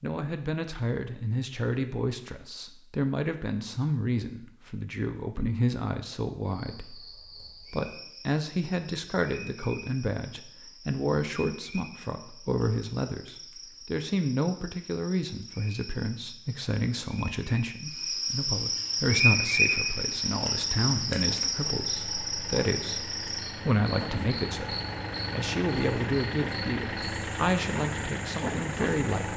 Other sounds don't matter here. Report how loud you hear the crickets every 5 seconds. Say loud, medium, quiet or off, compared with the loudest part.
off, quiet, quiet, loud, loud, quiet.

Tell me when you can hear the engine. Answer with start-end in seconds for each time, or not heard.
18.6-29.3.